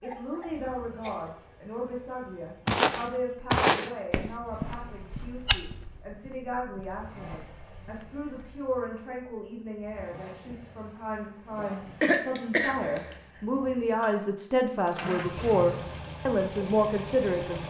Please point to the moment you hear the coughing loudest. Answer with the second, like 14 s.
12 s.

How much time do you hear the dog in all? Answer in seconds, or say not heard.
not heard.